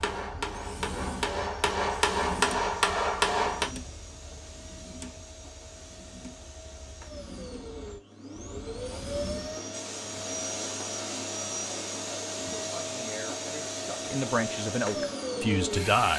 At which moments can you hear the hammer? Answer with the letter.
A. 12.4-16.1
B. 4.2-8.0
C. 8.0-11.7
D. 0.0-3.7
D.